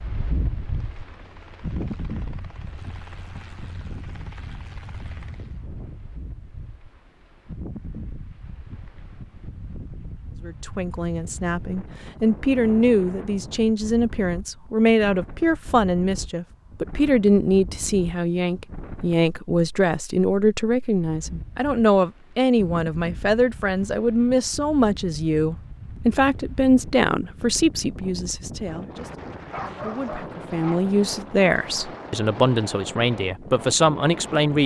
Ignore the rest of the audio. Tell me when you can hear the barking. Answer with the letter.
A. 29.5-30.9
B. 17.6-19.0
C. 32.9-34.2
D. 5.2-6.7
A.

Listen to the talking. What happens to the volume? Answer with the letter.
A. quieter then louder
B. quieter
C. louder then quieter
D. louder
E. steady
E.